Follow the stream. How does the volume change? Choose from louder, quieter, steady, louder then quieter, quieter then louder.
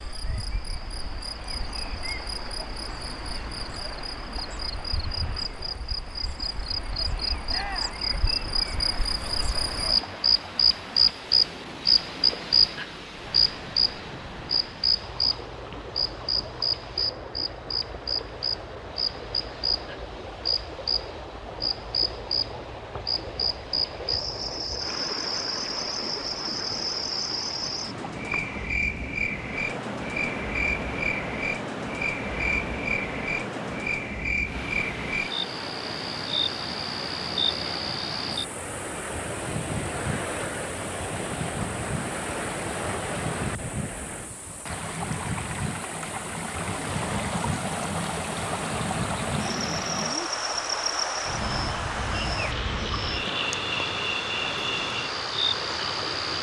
louder.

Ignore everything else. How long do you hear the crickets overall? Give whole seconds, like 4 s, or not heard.
56 s.